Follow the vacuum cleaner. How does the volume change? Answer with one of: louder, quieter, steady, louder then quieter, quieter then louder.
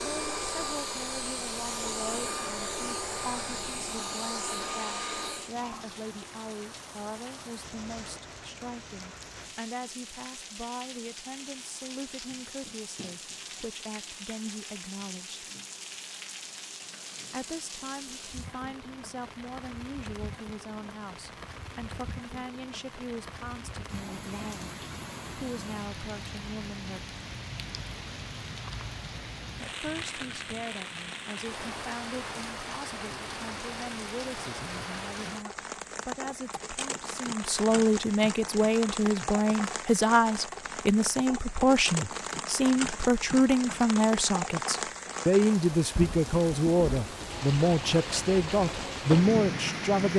steady.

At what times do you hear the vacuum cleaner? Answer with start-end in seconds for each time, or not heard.
0.0-5.5.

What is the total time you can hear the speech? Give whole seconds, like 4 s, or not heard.
45 s.